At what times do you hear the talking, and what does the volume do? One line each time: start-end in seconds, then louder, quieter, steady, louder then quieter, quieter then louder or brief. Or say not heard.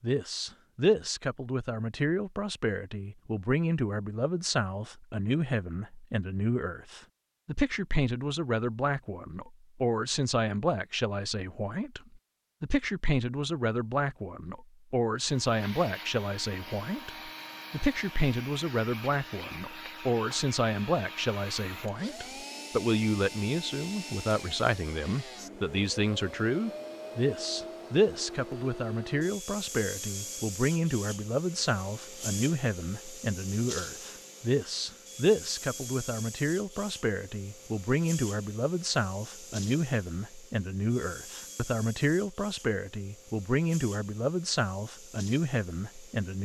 0.0-46.4 steady.